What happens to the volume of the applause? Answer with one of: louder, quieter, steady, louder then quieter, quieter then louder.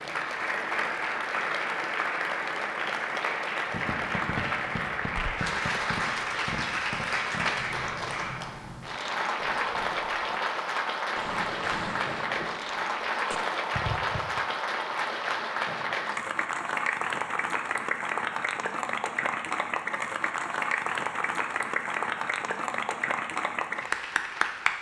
steady.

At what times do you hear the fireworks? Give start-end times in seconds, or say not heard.
3.6-10.3, 11.2-14.4.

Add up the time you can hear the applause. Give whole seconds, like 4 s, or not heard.
25 s.